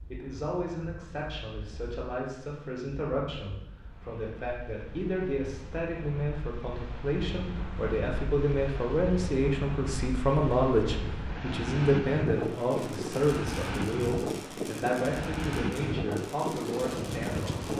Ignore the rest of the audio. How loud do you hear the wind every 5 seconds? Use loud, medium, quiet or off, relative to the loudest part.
quiet, medium, loud, loud.